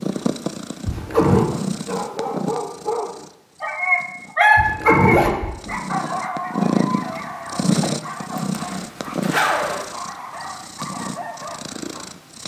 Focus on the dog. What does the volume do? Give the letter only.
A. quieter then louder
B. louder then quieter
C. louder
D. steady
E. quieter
B.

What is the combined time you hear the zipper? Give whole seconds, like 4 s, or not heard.
3 s.